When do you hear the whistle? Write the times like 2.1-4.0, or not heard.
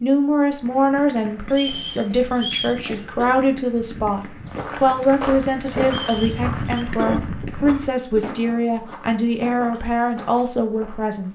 1.5-2.8, 5.8-6.8.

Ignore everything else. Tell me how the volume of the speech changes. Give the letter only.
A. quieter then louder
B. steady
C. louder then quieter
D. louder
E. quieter
B.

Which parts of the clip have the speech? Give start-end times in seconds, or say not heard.
0.0-11.3.